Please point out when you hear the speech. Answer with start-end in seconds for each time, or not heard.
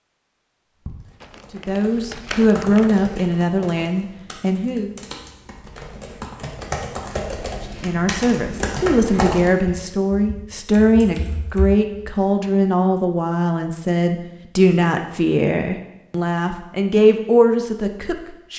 1.5-4.9, 7.8-18.5.